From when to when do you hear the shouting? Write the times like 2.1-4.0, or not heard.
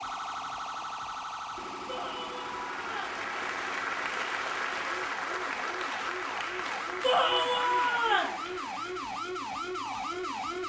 1.9-3.2, 7.0-8.3.